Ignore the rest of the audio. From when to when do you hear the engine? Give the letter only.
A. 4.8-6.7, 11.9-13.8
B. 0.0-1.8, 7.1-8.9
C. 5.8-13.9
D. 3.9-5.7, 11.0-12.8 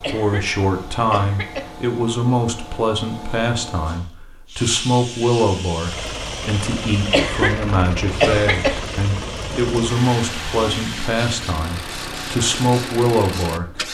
C.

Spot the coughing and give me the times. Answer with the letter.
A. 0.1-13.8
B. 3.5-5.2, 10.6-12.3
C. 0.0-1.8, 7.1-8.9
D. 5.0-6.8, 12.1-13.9
C.